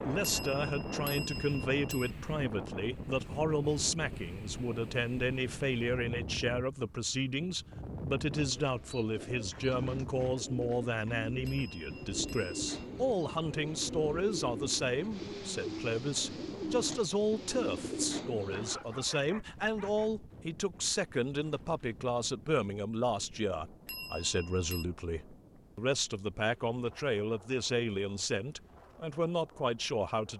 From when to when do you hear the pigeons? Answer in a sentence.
The pigeons can be heard from 8.3 to 18.8 s.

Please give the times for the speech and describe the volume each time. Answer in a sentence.
The speech can be heard from 0.0 to 30.3 s, at a steady volume.